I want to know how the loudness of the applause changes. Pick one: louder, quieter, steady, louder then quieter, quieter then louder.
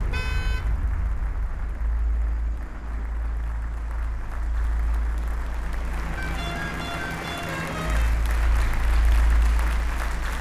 louder.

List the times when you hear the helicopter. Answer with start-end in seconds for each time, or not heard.
0.0-10.3.